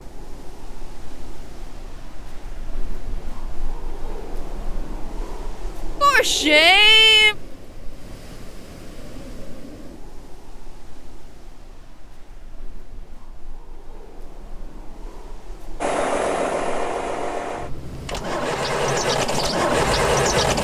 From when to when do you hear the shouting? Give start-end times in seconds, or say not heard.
6.0-7.3.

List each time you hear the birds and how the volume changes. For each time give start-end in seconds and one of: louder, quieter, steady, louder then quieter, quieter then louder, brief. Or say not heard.
not heard.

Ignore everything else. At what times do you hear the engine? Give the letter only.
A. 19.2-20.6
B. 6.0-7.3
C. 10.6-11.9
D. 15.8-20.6
D.